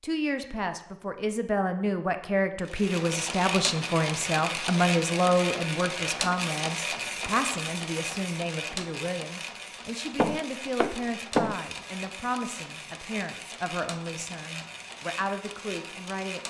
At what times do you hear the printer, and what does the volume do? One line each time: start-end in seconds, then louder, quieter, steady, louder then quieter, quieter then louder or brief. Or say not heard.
2.6-16.4 quieter.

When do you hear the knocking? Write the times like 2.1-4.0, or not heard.
10.2-11.6.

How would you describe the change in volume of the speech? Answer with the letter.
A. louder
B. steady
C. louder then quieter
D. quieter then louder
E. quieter
E.